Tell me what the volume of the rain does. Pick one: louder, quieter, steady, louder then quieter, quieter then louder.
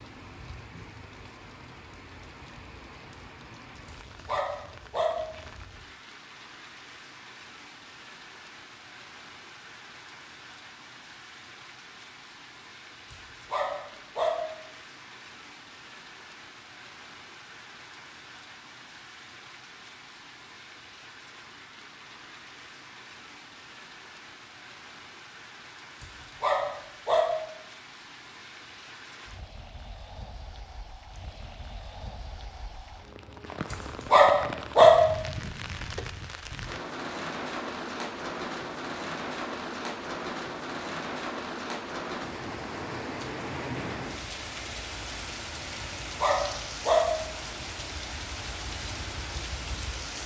louder.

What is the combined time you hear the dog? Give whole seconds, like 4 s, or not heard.
6 s.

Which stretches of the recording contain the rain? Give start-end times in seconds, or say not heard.
0.0-50.2.